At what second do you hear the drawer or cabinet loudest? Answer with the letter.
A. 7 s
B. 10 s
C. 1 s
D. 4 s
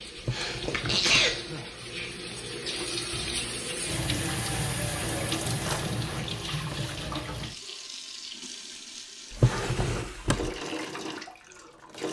B.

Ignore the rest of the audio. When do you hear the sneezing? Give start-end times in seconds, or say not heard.
0.3-1.6.